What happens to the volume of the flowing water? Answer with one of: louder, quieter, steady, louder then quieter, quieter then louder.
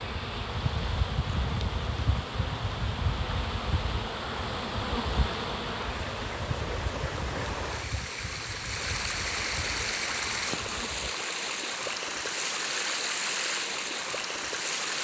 louder.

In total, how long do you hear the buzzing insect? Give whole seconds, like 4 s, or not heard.
11 s.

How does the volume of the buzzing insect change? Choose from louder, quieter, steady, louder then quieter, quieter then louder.
quieter.